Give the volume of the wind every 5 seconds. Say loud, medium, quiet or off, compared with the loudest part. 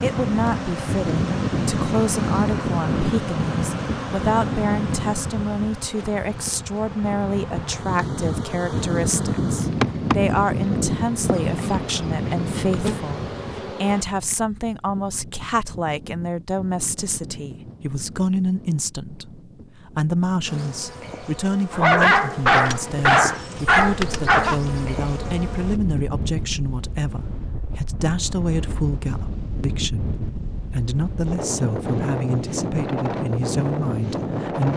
loud, loud, loud, quiet, quiet, medium, loud.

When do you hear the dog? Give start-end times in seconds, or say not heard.
21.7-24.6.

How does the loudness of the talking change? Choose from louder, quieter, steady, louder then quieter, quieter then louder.
steady.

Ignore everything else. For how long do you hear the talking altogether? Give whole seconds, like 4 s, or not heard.
35 s.